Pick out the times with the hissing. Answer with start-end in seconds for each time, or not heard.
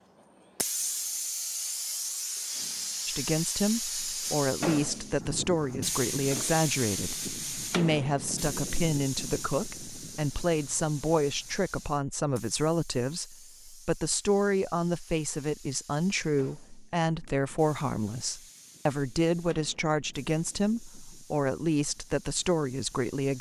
0.1-23.3.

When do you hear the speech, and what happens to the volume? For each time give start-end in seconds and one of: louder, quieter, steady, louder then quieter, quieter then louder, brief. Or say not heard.
3.0-23.3 steady.